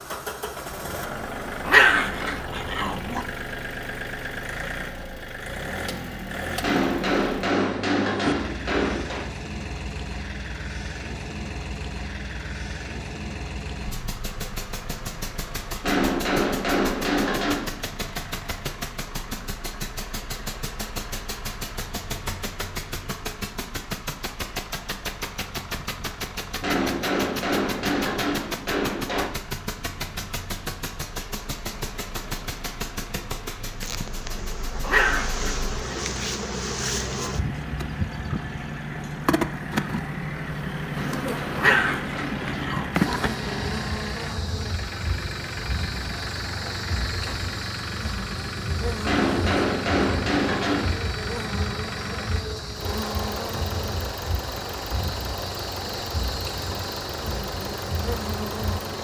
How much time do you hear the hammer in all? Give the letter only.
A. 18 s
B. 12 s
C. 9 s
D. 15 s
B.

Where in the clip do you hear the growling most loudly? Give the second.
2 s.